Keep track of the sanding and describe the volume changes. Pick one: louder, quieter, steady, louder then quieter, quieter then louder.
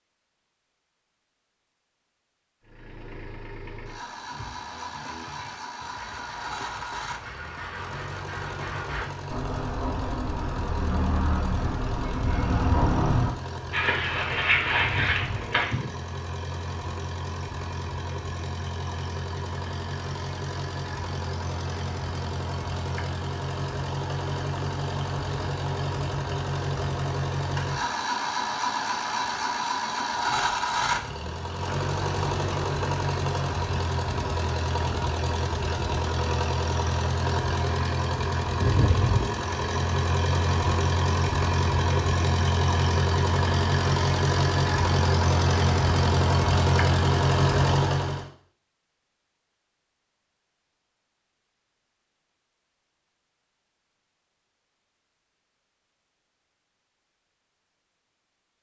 louder.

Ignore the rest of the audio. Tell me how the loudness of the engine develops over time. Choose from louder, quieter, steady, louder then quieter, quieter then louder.
louder.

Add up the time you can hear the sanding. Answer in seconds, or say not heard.
12 s.